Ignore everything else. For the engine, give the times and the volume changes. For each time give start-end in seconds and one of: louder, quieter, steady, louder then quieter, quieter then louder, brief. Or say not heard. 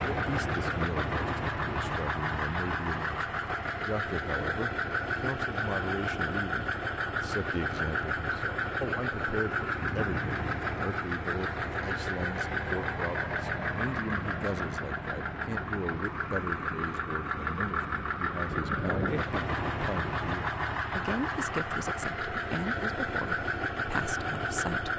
0.0-24.9 steady.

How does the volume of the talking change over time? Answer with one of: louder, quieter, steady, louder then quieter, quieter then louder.
steady.